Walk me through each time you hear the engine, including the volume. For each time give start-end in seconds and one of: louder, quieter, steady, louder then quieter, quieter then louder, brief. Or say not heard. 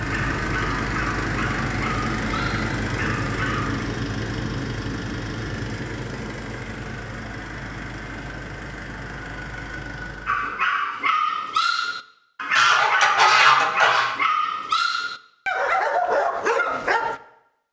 0.0-10.6 quieter.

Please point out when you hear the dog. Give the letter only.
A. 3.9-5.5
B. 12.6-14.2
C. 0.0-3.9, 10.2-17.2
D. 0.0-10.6
C.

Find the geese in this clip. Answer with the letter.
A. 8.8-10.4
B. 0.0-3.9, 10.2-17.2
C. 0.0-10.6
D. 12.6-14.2
D.